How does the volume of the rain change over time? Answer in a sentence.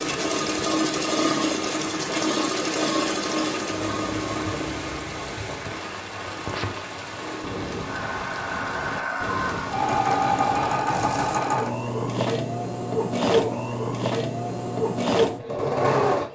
The volume of the rain stays about the same.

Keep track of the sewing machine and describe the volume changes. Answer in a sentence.
The loudness of the sewing machine goes down, then up.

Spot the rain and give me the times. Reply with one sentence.
The rain can be heard from 0.0 to 11.4 s.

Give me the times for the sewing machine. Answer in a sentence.
The sewing machine can be heard from 0.0 to 16.3 s.